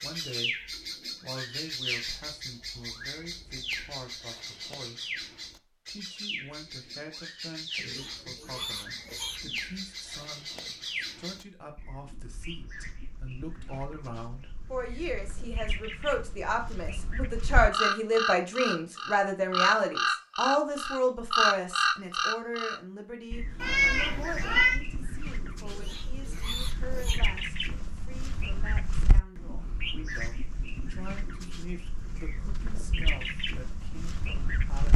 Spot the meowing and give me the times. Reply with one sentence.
The meowing can be heard from 23.6 to 24.8 s.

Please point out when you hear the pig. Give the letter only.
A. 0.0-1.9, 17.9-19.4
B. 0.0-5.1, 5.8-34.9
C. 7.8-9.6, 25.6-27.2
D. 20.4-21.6
C.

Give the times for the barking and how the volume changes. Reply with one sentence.
You can't hear the barking here.